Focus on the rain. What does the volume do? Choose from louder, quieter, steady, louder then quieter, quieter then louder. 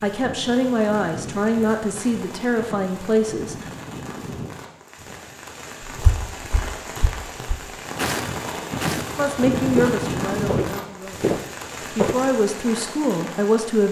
louder then quieter.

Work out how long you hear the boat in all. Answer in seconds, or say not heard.
not heard.